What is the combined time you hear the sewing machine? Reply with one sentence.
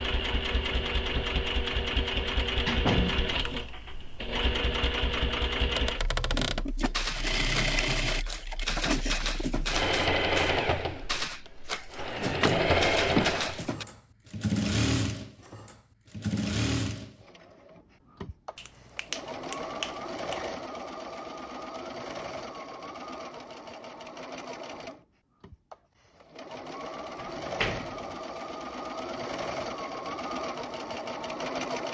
The sewing machine can be heard for 32 seconds in total.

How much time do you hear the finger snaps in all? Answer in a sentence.
You can hear the finger snaps for 2 seconds altogether.